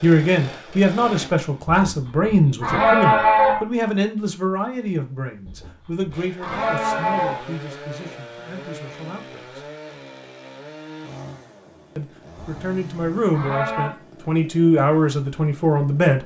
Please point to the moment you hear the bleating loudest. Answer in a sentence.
The volume of the bleating peaks at 3 seconds.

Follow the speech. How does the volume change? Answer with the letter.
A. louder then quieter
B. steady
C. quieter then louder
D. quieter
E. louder
C.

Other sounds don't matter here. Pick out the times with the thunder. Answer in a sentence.
The thunder can't be heard in this clip.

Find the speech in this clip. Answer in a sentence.
The speech can be heard from 0.0 to 9.7 s and from 11.9 to 16.2 s.